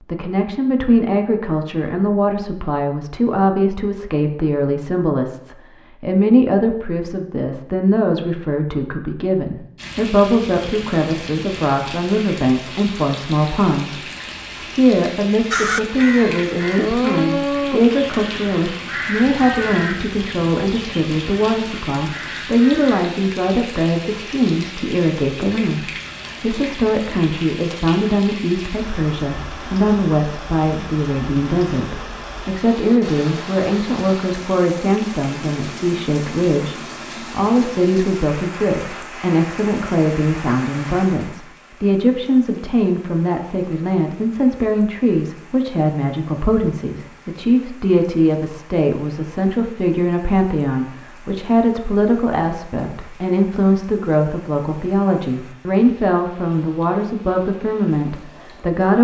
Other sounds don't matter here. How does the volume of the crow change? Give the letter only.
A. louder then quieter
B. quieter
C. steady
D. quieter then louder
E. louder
B.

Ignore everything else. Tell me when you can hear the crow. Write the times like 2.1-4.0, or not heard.
15.5-23.1.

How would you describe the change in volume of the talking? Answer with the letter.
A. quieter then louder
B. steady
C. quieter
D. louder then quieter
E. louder
B.